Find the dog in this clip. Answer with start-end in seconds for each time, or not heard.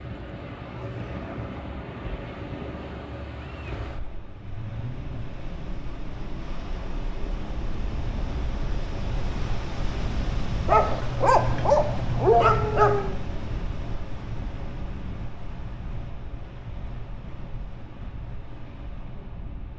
10.7-13.2.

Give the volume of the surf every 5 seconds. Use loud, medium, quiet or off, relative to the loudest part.
loud, loud, loud, medium.